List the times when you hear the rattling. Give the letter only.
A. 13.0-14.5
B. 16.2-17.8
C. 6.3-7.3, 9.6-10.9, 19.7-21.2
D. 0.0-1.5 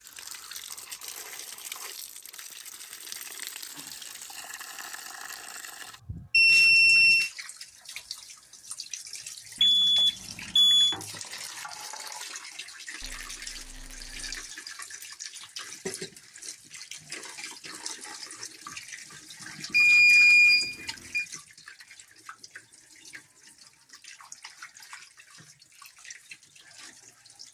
A.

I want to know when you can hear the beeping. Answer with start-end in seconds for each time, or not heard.
6.3-7.3, 9.6-10.9, 19.7-21.2.